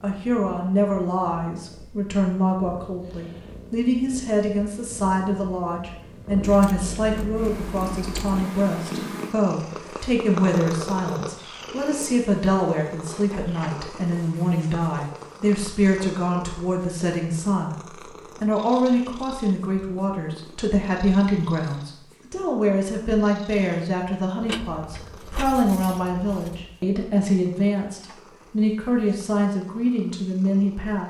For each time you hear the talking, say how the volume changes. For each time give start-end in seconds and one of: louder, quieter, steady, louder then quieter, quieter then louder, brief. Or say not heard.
0.0-17.8 steady
18.4-31.0 steady.